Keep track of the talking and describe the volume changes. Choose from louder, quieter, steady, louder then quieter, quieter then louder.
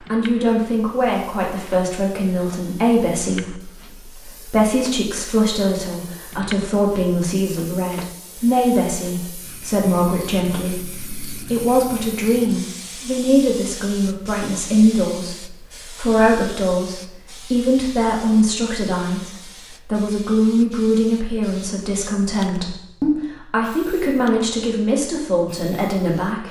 steady.